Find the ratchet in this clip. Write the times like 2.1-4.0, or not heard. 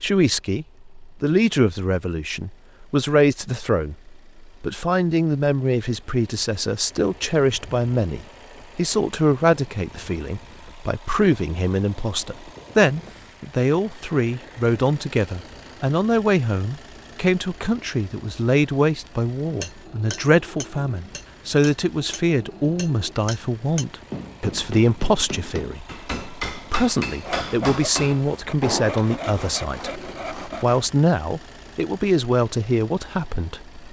not heard.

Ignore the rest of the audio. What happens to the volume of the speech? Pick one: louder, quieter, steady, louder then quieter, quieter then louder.
steady.